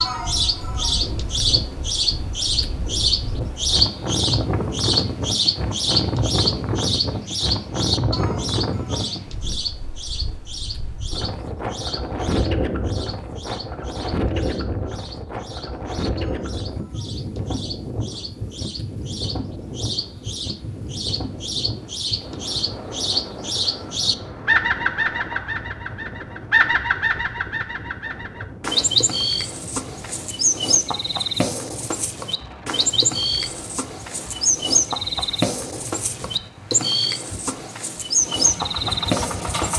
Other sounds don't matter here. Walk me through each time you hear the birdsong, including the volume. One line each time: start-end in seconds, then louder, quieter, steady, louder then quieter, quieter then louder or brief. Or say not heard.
0.0-39.7 quieter then louder.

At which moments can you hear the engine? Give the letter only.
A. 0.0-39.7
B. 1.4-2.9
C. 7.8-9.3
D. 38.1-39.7
D.